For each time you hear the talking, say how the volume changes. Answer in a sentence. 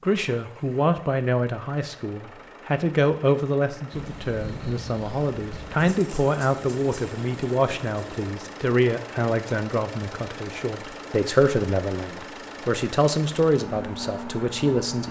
The talking can be heard from 0.0 to 15.0 s, at a steady volume.